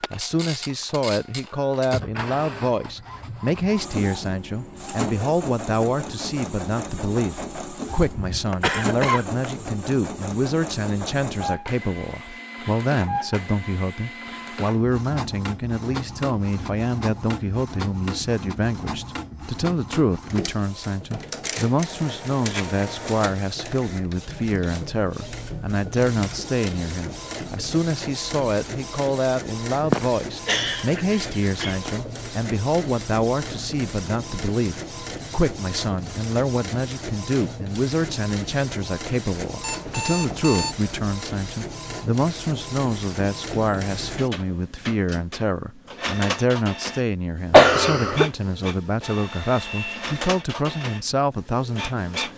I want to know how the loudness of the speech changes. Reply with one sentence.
The loudness of the speech stays about the same.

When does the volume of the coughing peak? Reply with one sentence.
The volume of the coughing peaks at 48 seconds.